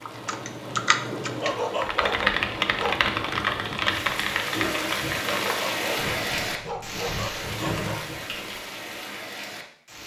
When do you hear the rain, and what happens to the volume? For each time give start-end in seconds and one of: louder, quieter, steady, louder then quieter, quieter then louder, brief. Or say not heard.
0.0-10.0 louder then quieter.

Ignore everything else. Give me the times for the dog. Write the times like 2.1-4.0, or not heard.
1.4-3.0, 5.2-8.1.